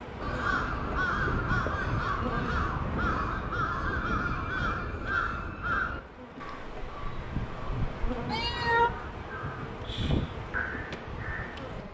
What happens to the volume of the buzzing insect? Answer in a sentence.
The volume of the buzzing insect goes down, then up.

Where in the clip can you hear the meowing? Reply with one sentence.
You can hear the meowing from 8.2 to 8.9 s.